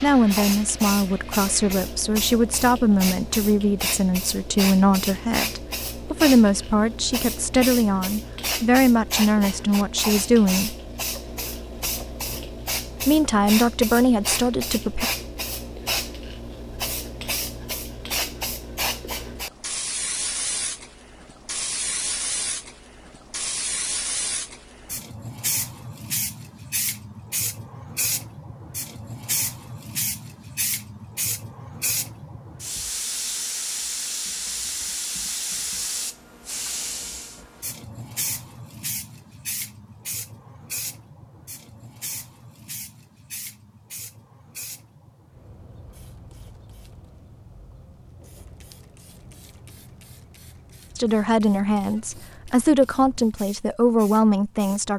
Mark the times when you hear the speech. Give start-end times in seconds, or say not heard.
0.0-10.8, 13.1-15.1, 51.0-54.9.